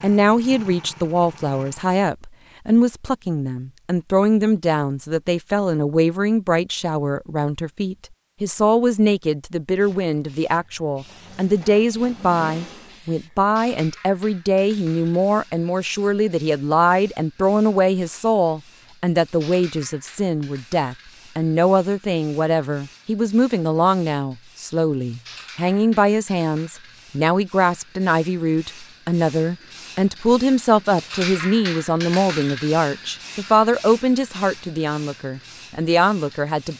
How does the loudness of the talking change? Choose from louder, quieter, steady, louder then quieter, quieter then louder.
steady.